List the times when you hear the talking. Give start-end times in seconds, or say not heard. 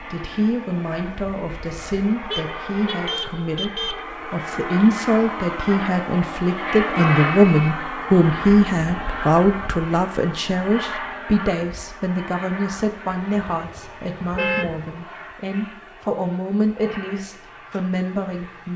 0.0-18.7.